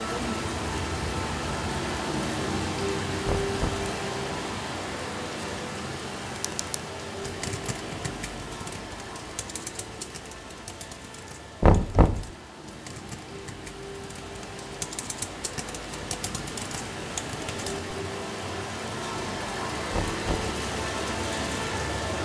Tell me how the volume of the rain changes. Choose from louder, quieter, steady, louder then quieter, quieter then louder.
quieter then louder.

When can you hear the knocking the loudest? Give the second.
12 s.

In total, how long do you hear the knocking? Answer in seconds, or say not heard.
2 s.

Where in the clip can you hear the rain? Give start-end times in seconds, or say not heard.
0.0-22.2.